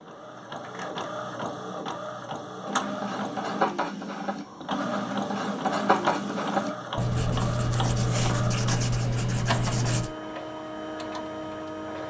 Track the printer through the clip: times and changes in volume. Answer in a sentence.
The printer can be heard from 0.0 to 12.0 s, at a steady volume.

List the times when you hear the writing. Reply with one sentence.
The writing can be heard from 2.6 to 10.1 s.